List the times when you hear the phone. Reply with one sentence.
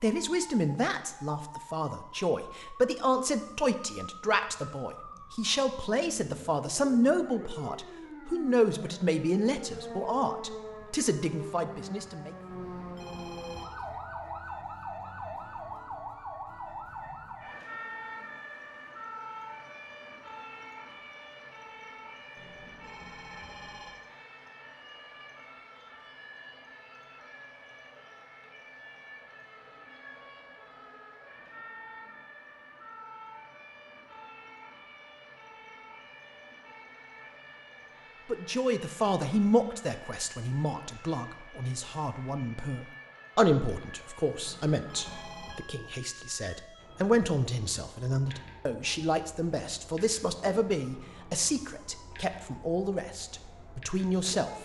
The phone can be heard from 12.4 to 13.7 s, from 22.4 to 23.9 s and from 44.4 to 45.6 s.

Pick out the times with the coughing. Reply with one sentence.
You can't hear the coughing here.